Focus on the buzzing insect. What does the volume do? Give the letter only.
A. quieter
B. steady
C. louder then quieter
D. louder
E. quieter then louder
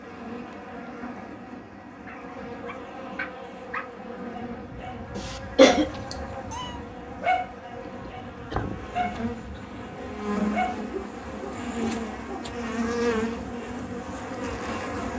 D.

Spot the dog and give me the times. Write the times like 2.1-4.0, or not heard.
2.0-12.6.